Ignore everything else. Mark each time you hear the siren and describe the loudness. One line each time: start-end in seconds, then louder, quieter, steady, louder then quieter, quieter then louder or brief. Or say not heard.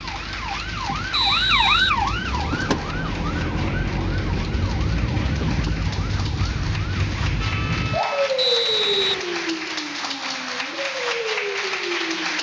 0.0-12.3 quieter.